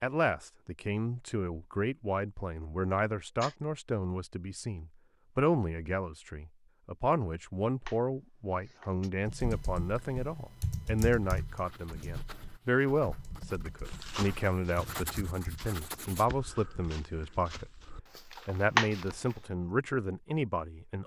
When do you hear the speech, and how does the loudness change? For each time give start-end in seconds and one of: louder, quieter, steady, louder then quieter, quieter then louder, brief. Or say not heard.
0.0-21.0 steady.